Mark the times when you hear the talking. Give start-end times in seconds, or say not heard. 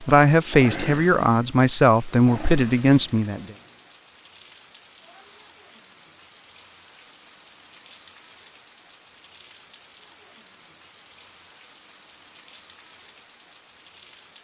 0.0-3.5.